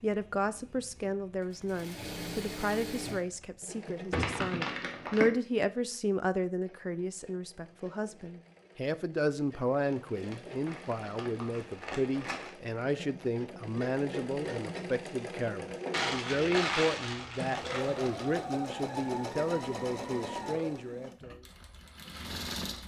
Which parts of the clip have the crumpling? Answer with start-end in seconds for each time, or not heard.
4.1-5.3, 9.9-12.5, 15.9-18.4.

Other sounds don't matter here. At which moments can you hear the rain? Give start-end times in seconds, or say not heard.
not heard.